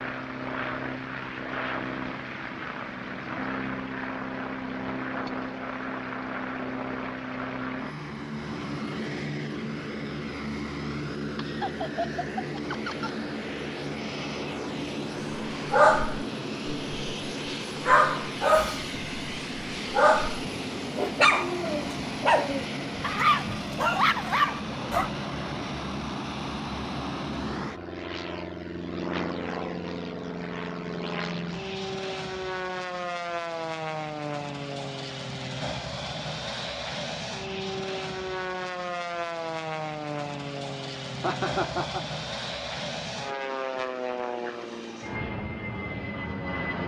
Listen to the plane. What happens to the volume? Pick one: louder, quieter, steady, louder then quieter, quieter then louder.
steady.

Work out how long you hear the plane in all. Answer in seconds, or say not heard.
47 s.